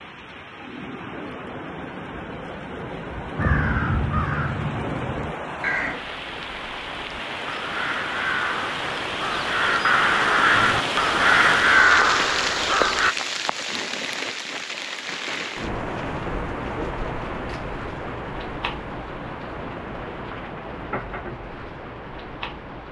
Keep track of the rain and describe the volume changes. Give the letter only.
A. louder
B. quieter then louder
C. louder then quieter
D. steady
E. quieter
C.